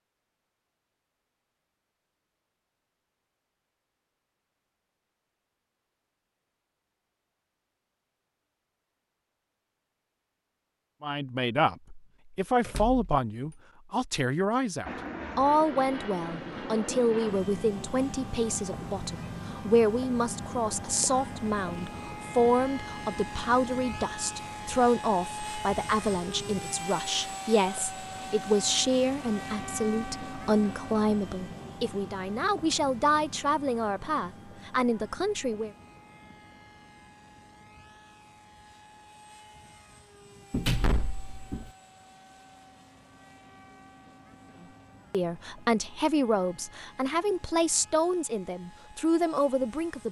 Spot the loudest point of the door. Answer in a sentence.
The volume of the door peaks at 41 seconds.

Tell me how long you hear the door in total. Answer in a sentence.
The door can be heard for 2 seconds in total.